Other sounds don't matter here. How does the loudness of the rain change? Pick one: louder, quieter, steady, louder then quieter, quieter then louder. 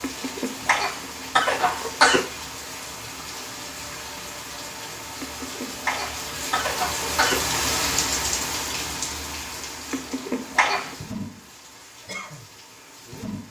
louder then quieter.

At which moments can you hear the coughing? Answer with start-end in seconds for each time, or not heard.
0.0-2.2, 5.2-7.4, 9.9-10.9.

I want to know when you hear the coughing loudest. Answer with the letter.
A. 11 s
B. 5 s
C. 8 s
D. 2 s
D.